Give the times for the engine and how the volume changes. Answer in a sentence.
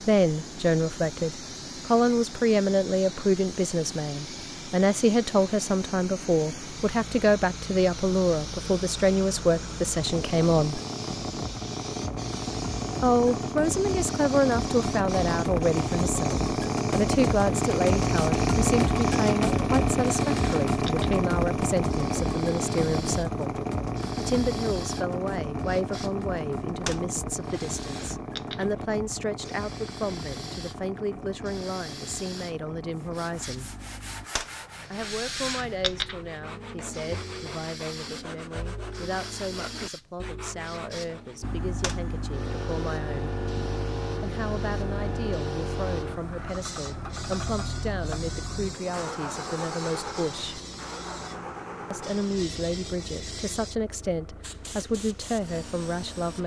You can hear the engine from 0.0 to 34.3 s, getting louder then quieter; and from 41.4 to 56.1 s, getting quieter.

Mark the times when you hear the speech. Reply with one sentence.
The speech can be heard from 0.0 to 10.8 s, from 13.0 to 33.8 s, from 34.9 to 43.4 s, from 44.2 to 50.6 s and from 51.9 to 56.4 s.